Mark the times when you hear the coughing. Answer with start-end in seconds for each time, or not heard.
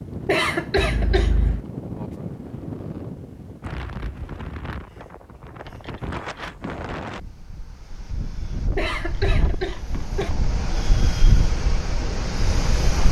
0.2-1.4, 8.8-10.3.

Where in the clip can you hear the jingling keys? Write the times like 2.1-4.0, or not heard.
0.8-1.6, 5.7-7.0, 8.9-10.4.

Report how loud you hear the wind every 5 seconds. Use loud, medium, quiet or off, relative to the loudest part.
medium, medium, loud.